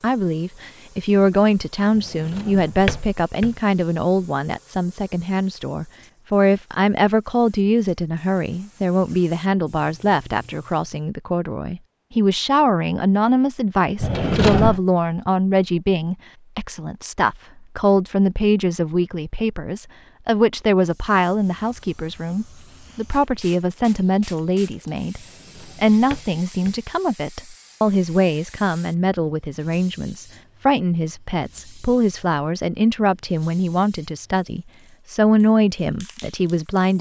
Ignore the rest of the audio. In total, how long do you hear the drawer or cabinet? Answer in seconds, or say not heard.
4 s.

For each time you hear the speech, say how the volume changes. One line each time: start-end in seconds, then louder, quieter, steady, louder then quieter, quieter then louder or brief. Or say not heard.
0.0-36.9 steady.